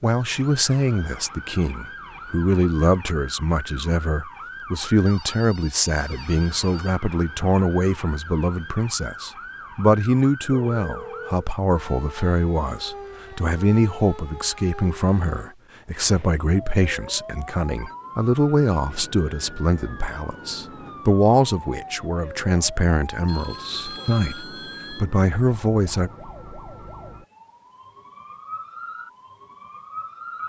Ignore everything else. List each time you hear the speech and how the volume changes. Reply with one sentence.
The speech can be heard from 0.0 to 26.1 s, at a steady volume.